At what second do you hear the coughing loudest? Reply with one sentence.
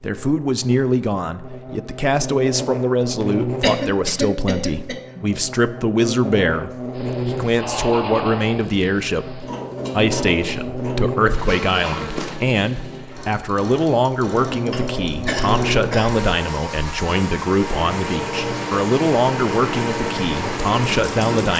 The loudest moment of the coughing is at 4 seconds.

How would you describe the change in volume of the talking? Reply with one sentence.
The volume of the talking stays about the same.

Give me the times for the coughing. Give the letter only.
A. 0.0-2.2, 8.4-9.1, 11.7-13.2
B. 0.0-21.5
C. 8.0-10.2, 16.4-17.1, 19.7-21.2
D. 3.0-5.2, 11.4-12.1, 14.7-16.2
D.